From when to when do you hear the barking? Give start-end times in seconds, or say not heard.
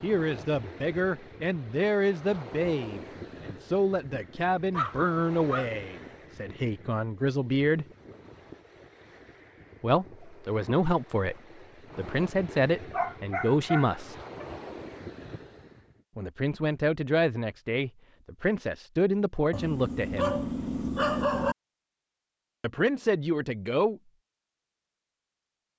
4.7-5.7, 12.9-14.4, 19.5-21.6.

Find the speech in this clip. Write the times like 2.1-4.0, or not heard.
0.0-7.8, 9.8-11.3, 11.9-14.2, 16.1-20.4, 22.6-24.0.